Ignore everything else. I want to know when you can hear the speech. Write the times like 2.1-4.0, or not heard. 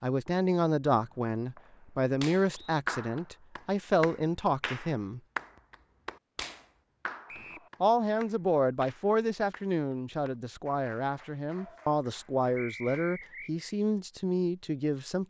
0.0-5.2, 7.8-15.2.